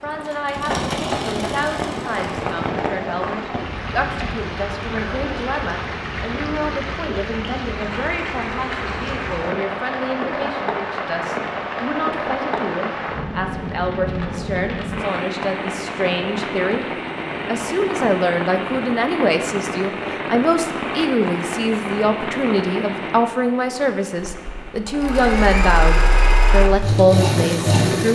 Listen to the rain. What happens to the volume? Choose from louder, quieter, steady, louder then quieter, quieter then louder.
steady.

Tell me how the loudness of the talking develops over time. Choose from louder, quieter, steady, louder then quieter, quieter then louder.
louder.